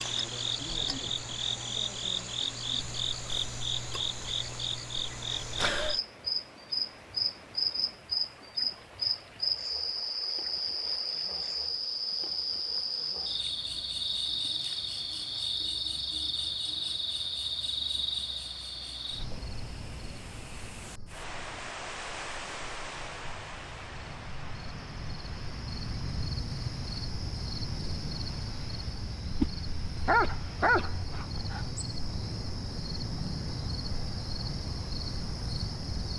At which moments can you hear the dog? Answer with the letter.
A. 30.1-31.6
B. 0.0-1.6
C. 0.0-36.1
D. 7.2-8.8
A.